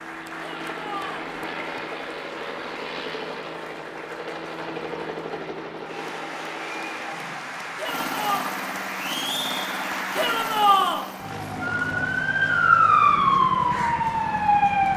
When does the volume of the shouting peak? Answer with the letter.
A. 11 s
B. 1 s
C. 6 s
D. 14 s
A.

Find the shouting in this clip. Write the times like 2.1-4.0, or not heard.
0.4-1.3, 7.8-8.4, 10.2-11.1.